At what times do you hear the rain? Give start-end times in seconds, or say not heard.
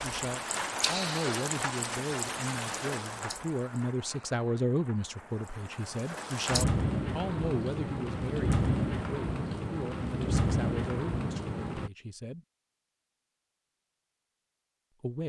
0.0-11.9.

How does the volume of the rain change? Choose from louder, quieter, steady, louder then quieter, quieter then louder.
quieter then louder.